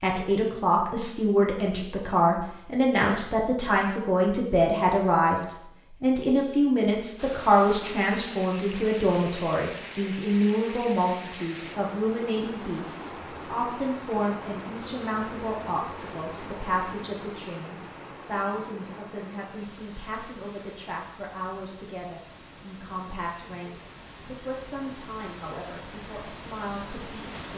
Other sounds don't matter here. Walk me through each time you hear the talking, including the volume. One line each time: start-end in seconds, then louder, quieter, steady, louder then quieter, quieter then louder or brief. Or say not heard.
0.0-27.5 quieter.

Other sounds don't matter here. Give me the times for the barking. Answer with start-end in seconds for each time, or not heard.
not heard.